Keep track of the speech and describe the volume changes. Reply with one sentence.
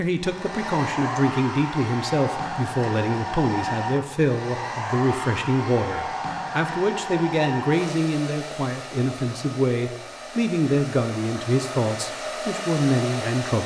The loudness of the speech stays about the same.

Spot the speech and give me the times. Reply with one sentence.
The speech can be heard from 0.0 to 13.6 s.